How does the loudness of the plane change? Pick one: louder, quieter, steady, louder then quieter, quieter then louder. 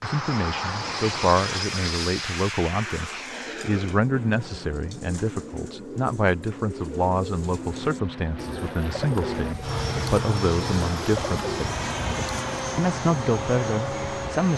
quieter then louder.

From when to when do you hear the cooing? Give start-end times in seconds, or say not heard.
2.6-12.4.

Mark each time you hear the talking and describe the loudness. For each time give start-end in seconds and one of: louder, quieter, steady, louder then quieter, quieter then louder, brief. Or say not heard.
0.0-11.8 steady
12.8-14.5 brief.